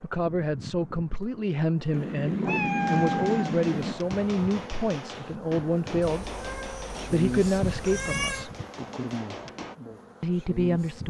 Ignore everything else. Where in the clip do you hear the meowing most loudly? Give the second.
3 s.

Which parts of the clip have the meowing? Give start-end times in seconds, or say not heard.
1.9-4.0, 6.0-8.5.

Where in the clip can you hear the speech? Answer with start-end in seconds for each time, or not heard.
0.0-6.3, 7.1-8.5, 10.2-11.0.